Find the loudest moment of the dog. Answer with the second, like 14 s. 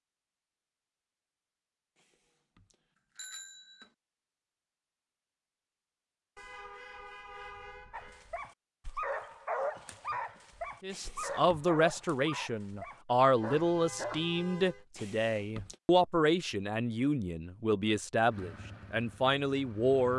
10 s.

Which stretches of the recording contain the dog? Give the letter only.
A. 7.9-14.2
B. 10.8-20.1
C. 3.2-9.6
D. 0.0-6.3
A.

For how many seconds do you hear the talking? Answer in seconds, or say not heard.
9 s.